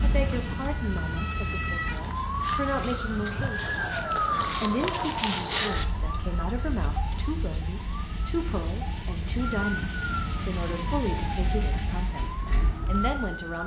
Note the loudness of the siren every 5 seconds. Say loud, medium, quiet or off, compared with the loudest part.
loud, loud, medium.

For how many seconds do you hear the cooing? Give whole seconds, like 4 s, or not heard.
not heard.